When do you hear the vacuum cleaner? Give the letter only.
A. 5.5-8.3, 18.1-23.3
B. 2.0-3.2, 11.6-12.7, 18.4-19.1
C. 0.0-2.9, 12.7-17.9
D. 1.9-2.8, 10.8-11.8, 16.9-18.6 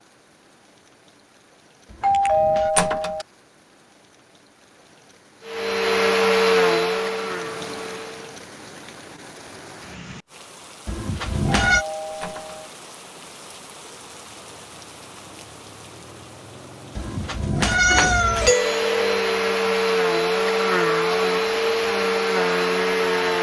A.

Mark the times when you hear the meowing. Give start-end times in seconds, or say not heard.
1.9-2.8, 10.8-11.8, 16.9-18.6.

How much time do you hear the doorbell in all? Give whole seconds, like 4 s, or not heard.
3 s.